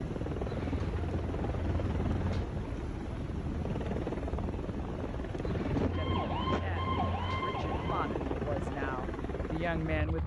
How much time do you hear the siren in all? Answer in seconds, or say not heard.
2 s.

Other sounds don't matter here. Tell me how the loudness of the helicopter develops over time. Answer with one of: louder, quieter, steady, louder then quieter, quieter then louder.
steady.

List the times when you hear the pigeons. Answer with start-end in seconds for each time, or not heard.
0.5-2.5, 5.4-7.5.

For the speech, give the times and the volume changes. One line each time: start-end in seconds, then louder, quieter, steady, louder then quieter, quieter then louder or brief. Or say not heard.
6.0-10.2 louder.